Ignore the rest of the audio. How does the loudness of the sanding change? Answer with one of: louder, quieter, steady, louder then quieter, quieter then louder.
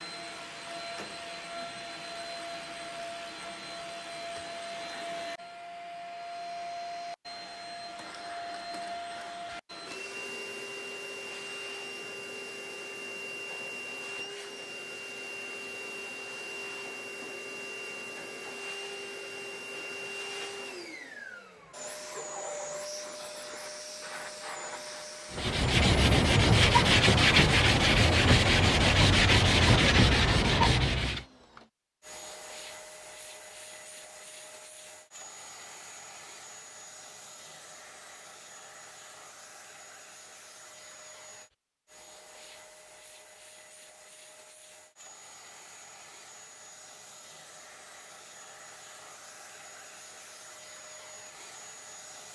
steady.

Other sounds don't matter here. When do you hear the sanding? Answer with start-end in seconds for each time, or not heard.
25.3-31.2.